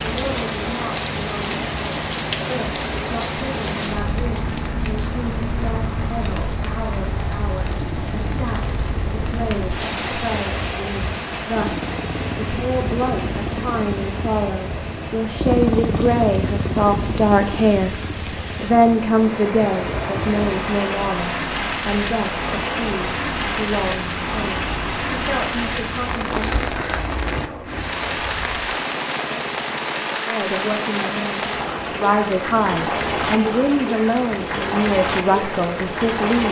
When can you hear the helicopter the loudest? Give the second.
16 s.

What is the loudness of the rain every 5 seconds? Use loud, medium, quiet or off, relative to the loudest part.
loud, medium, medium, medium, loud, loud, loud, loud.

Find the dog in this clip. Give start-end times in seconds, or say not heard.
not heard.